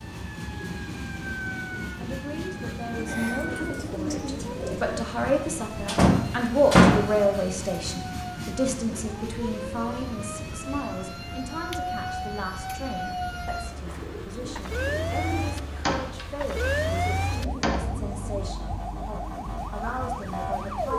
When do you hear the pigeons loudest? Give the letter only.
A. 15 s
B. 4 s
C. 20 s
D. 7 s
B.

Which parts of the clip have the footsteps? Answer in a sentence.
The footsteps can't be heard in this clip.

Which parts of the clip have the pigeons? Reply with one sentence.
You can hear the pigeons from 3.0 to 5.0 s and from 13.8 to 15.4 s.